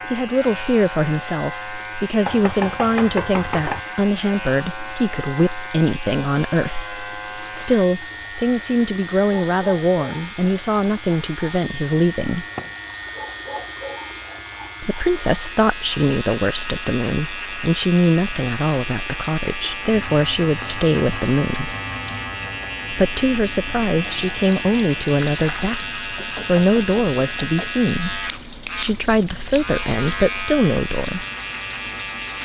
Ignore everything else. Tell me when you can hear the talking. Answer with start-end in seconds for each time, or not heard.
0.1-12.4, 14.8-21.8, 22.9-31.2.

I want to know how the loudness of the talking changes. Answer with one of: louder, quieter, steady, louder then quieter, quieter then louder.
steady.